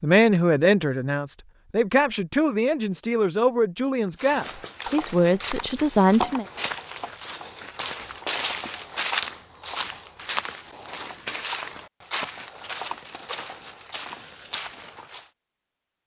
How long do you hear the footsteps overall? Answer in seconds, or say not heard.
11 s.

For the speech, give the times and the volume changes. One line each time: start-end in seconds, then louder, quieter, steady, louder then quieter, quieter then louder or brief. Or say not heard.
0.0-6.5 steady.